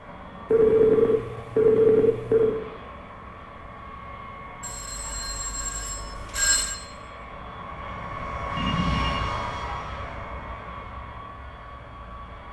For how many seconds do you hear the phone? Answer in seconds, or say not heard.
5 s.